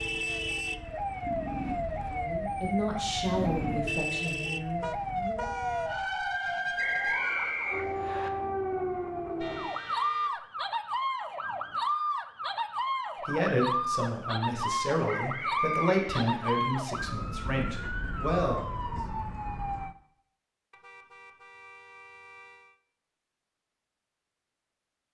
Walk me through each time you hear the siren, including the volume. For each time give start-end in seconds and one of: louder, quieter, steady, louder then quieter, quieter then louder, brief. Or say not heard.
0.0-19.9 steady.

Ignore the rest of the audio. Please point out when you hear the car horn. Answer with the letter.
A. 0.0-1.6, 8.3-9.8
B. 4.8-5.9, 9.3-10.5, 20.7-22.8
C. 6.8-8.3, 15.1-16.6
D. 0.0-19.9
B.